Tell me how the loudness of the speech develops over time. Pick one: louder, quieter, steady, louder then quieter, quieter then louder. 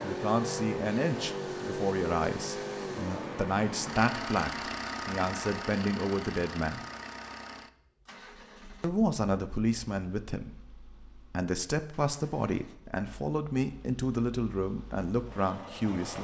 steady.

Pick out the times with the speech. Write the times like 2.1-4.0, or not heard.
0.0-6.8, 8.8-16.1.